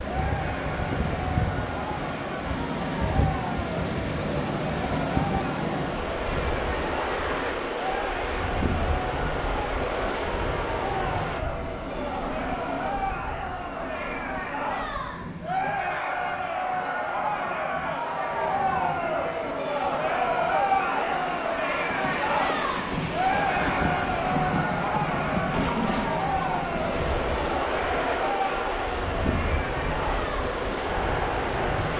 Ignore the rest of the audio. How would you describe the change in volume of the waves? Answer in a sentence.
The volume of the waves goes down, then up.